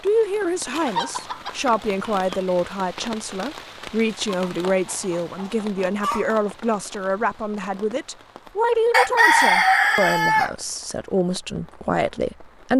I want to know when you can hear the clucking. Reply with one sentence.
The clucking can be heard from 0.7 to 2.5 s, from 4.2 to 6.4 s and from 8.9 to 10.5 s.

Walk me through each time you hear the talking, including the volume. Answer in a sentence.
You can hear the talking from 0.0 to 12.7 s, at a steady volume.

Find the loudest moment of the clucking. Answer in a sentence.
The loudest moment of the clucking is at 9 seconds.